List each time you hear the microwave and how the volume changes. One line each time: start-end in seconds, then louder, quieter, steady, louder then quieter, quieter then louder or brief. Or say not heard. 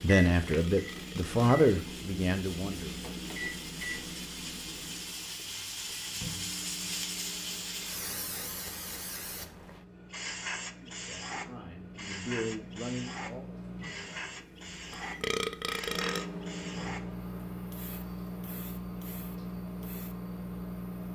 0.0-21.1 quieter then louder.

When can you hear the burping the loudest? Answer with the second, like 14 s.
15 s.